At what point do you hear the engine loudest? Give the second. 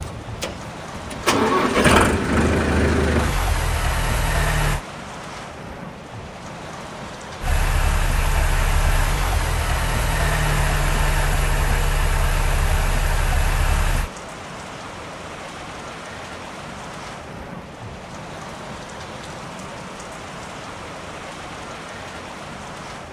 2 s.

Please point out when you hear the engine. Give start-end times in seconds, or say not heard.
0.0-4.8, 7.4-14.1.